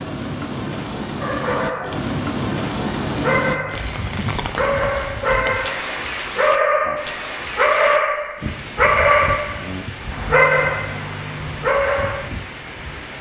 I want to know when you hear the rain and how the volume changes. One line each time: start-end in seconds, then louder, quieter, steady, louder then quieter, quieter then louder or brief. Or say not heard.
0.0-13.1 quieter.